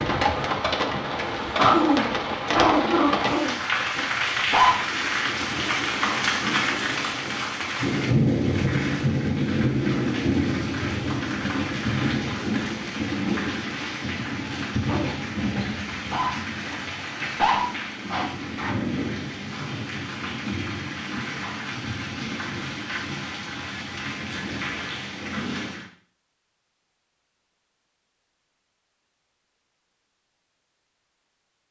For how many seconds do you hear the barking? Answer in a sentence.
The barking can be heard for 9 seconds in total.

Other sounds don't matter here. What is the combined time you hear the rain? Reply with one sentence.
You can hear the rain for 26 seconds altogether.